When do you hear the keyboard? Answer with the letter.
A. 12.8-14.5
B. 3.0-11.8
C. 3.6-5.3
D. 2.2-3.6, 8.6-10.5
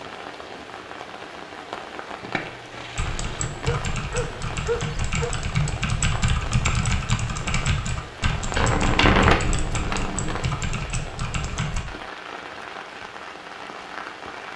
B.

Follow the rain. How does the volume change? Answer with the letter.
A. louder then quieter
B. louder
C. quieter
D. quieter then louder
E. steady
E.